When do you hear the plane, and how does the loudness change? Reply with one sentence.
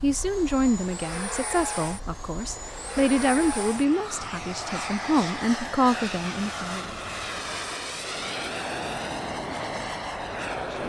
The plane can be heard from 0.0 to 10.8 s, at a steady volume.